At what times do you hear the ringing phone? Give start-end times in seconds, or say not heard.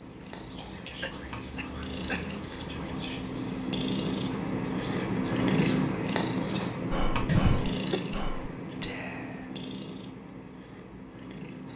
not heard.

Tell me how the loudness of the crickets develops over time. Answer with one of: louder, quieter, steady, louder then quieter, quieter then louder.
quieter.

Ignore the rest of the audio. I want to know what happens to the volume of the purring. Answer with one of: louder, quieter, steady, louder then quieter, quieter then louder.
louder then quieter.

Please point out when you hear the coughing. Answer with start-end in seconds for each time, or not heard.
1.0-2.4, 7.2-8.0.